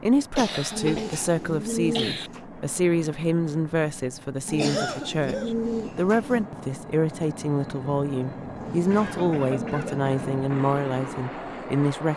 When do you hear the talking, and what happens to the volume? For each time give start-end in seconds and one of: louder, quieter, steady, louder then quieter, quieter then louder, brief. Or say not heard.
0.0-12.1 steady.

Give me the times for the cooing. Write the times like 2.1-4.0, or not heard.
0.7-2.4, 4.5-6.5, 8.6-10.4.